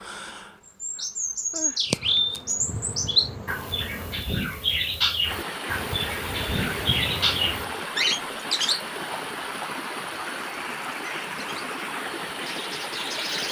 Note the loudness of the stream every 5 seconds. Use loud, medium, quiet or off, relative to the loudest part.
off, loud, loud.